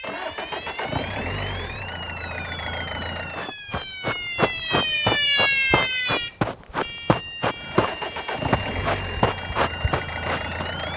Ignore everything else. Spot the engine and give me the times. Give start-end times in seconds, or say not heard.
0.0-3.5, 7.5-10.9.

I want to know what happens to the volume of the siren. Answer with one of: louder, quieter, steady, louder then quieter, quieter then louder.
louder then quieter.